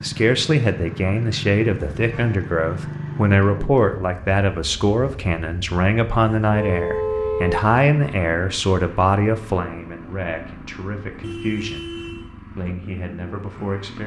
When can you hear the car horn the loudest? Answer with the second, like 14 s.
7 s.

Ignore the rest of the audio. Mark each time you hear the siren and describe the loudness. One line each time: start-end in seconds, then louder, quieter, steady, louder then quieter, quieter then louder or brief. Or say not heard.
not heard.